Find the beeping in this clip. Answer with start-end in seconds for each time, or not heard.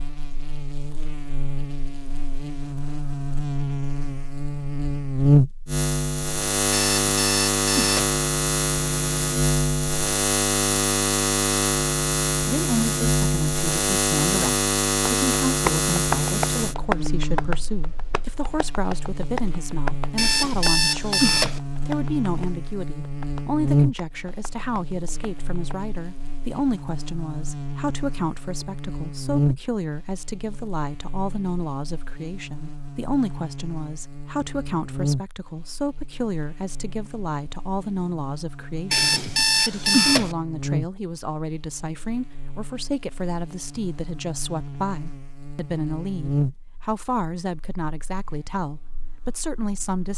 6.7-8.2, 20.1-21.6, 38.9-40.4.